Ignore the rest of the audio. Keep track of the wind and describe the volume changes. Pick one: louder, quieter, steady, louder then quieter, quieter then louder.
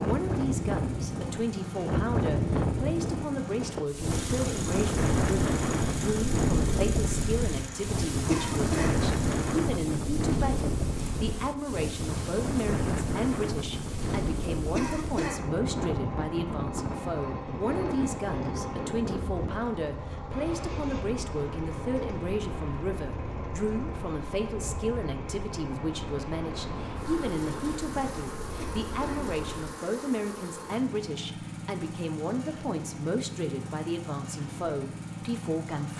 quieter.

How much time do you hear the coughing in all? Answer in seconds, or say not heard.
2 s.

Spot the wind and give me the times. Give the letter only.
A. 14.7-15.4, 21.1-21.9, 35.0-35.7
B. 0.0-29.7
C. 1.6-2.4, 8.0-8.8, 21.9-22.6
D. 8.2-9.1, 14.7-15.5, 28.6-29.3
B.